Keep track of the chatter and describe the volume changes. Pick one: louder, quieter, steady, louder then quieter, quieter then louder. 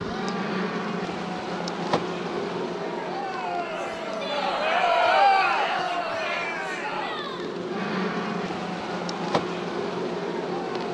louder then quieter.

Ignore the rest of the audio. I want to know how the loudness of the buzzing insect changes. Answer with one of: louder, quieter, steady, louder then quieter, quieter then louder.
quieter then louder.